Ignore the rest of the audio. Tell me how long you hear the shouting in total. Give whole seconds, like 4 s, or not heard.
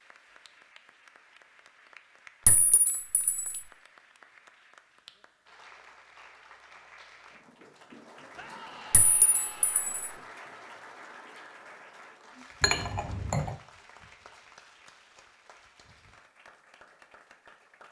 2 s.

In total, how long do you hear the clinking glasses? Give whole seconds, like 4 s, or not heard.
3 s.